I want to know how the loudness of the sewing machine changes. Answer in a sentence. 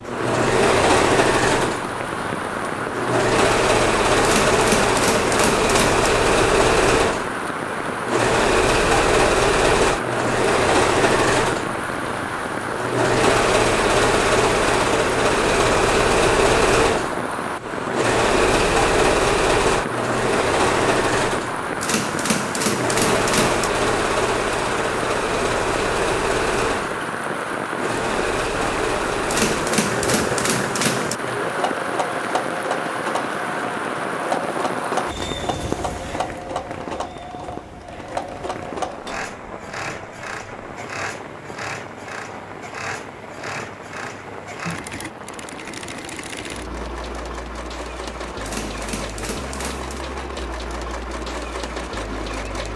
The volume of the sewing machine goes down.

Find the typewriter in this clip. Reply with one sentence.
The typewriter can be heard from 4.2 to 6.1 s, from 21.8 to 23.7 s, from 29.2 to 31.1 s and from 48.4 to 50.0 s.